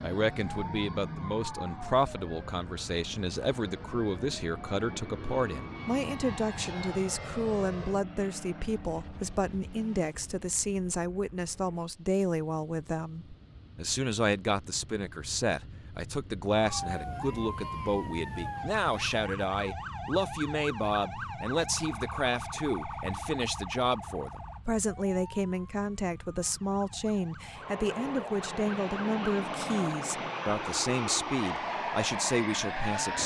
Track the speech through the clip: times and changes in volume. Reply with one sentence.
The speech can be heard from 0.0 to 33.2 s, at a steady volume.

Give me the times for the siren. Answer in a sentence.
The siren can be heard from 0.0 to 5.0 s and from 16.6 to 33.0 s.